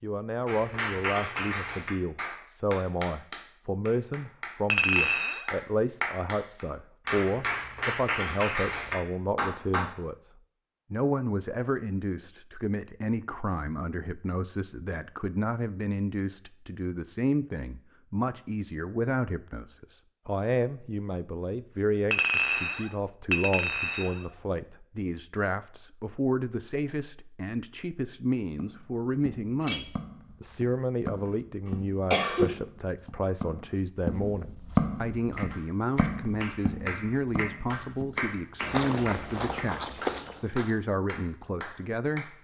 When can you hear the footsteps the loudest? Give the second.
35 s.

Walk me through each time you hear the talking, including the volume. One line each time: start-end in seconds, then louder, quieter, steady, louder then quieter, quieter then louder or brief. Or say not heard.
0.0-10.2 steady
10.9-42.3 steady.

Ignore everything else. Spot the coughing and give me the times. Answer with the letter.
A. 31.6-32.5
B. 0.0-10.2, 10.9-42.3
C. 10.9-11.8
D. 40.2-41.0
A.